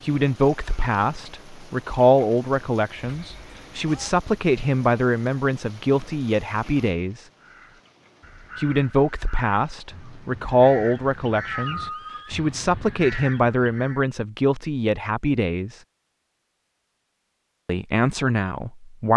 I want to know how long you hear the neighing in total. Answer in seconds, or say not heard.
2 s.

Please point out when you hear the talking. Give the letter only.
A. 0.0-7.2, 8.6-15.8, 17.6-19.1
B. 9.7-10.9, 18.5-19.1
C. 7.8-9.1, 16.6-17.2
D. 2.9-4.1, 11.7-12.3
A.